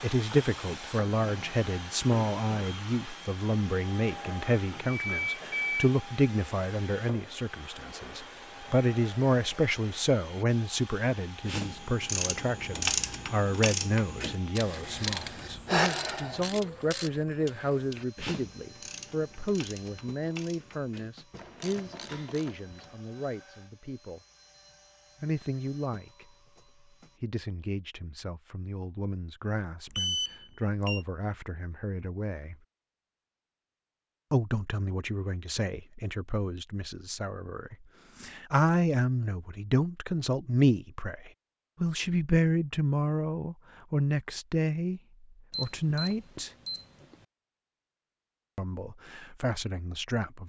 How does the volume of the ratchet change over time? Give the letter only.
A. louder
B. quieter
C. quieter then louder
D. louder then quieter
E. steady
B.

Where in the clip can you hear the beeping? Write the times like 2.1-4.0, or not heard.
4.8-5.9, 29.9-31.1, 45.5-46.8.